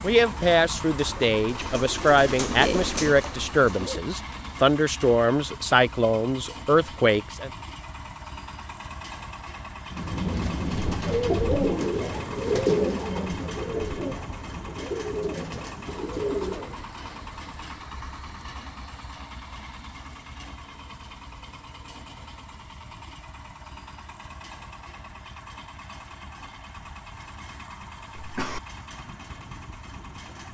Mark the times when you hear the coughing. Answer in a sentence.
You can hear the coughing from 28.1 to 28.6 s.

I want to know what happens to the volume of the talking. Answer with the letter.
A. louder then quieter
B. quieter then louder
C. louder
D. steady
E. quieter
D.